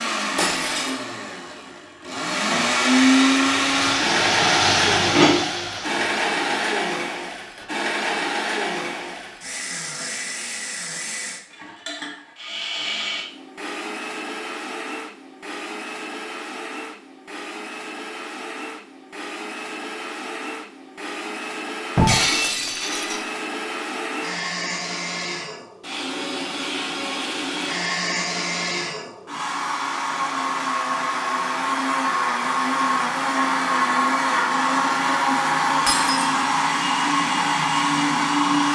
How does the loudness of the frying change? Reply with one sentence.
The volume of the frying goes up, then down.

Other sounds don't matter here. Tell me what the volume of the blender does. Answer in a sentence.
The loudness of the blender goes down, then up.